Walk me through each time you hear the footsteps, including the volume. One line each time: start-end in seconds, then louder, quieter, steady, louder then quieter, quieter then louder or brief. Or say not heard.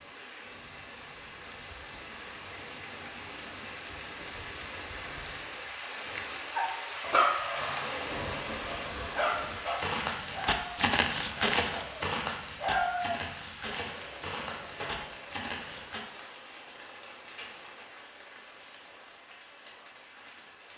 9.7-16.0 quieter.